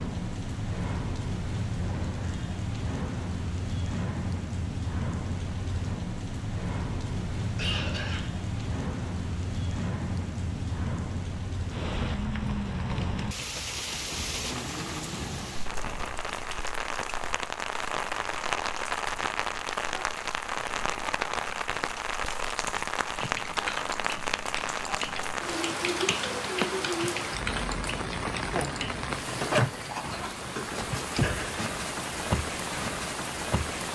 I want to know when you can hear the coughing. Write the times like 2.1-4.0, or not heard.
7.4-8.2, 30.1-31.6.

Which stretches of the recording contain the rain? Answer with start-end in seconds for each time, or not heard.
0.0-33.9.